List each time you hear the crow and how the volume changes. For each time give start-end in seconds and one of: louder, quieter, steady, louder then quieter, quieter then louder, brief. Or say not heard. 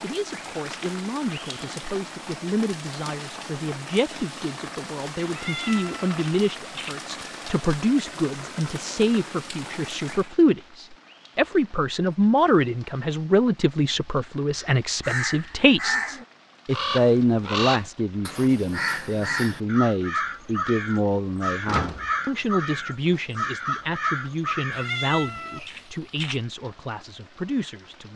14.6-24.9 steady.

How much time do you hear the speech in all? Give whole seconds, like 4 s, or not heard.
28 s.